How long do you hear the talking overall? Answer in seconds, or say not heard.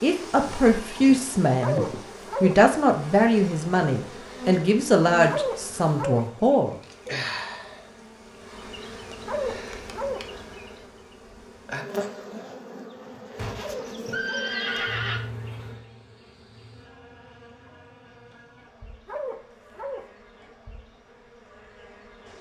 6 s.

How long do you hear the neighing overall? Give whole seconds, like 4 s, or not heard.
3 s.